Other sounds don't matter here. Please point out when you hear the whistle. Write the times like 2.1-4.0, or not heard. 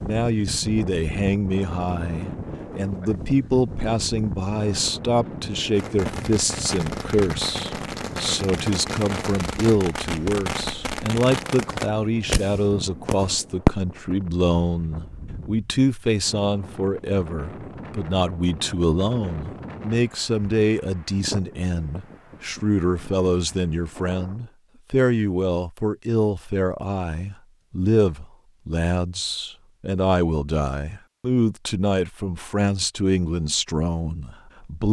not heard.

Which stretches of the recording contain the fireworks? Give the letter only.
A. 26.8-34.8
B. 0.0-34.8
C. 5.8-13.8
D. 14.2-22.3
C.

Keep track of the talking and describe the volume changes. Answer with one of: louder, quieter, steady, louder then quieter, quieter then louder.
steady.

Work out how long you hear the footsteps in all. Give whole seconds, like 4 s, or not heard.
not heard.